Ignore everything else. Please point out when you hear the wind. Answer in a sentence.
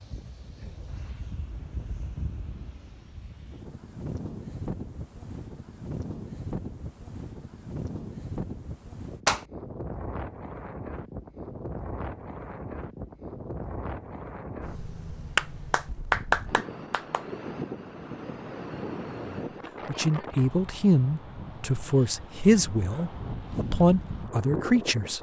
The wind can be heard from 0.0 to 25.1 s.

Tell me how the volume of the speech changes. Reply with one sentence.
The loudness of the speech goes down, then up.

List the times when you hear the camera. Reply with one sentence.
The camera can't be heard in this clip.